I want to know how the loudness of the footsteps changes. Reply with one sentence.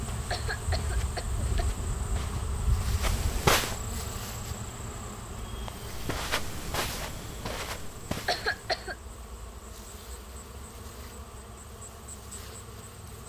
The loudness of the footsteps goes up, then down.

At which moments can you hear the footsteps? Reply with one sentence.
The footsteps can be heard from 0.0 to 3.8 s and from 5.6 to 8.8 s.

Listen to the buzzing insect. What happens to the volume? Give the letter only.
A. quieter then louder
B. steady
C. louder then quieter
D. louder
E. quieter
E.